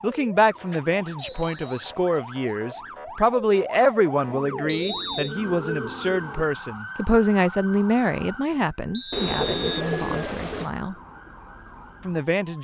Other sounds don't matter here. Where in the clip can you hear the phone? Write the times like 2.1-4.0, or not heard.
not heard.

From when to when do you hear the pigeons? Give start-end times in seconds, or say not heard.
0.6-2.5, 4.3-6.5, 9.1-10.7.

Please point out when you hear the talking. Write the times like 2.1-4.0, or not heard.
0.0-10.9, 12.1-12.5.